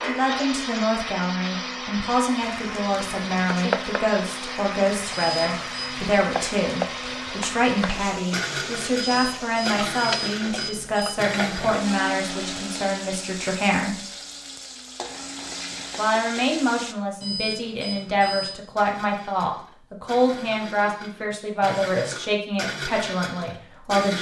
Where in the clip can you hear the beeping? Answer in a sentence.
The beeping can be heard from 5.1 to 6.1 s, from 8.9 to 11.2 s and from 17.2 to 18.6 s.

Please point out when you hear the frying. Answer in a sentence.
The frying can be heard from 2.4 to 16.9 s.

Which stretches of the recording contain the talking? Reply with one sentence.
You can hear the talking from 0.0 to 14.0 s and from 15.9 to 24.1 s.